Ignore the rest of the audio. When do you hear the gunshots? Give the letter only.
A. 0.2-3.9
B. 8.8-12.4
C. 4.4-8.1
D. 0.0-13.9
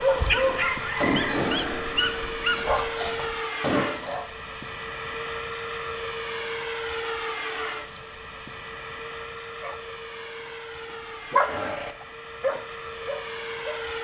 A.